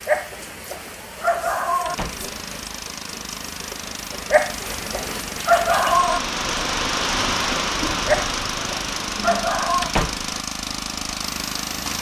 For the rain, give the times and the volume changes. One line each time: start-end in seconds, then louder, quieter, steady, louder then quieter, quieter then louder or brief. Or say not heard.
0.0-11.9 louder then quieter.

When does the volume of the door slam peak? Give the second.
10 s.